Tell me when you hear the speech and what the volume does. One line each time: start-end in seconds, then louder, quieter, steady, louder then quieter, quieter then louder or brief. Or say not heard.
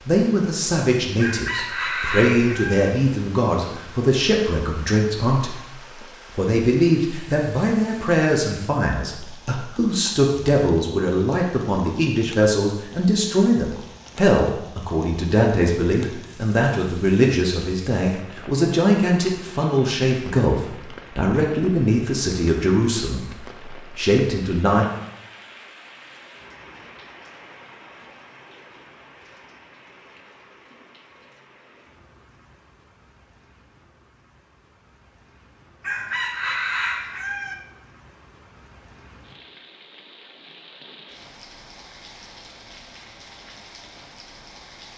0.0-24.9 steady.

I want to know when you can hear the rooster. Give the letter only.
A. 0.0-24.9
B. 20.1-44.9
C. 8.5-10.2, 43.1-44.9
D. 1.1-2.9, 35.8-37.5
D.